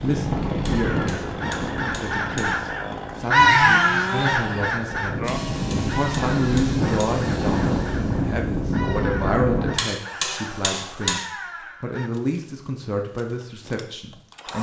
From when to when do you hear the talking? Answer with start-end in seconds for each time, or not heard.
0.0-1.3, 1.9-11.2, 11.8-14.5.